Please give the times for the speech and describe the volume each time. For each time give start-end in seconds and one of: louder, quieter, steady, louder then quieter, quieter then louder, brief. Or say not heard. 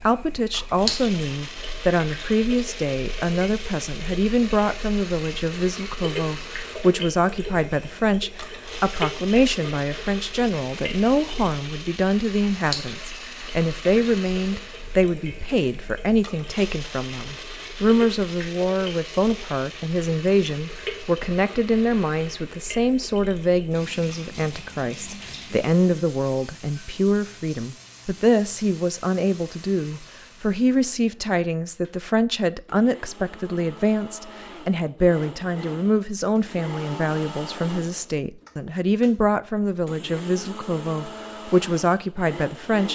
0.0-42.9 steady.